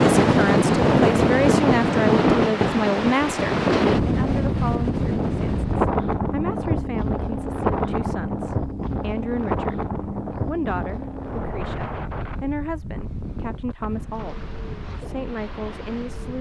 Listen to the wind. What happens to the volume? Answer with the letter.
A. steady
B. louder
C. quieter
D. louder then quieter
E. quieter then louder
C.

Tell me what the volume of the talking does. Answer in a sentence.
The loudness of the talking goes down.